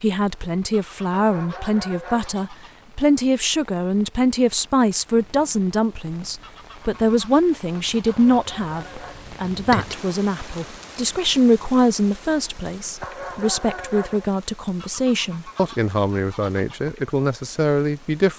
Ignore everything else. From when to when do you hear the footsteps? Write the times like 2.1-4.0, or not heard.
not heard.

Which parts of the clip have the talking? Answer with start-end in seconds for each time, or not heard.
0.0-18.3.